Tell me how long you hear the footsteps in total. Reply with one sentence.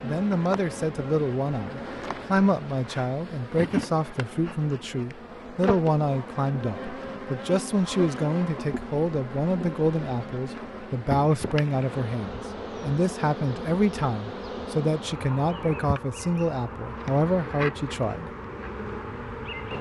The footsteps can't be heard in this clip.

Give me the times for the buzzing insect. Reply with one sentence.
The buzzing insect can be heard from 0.0 to 19.7 s.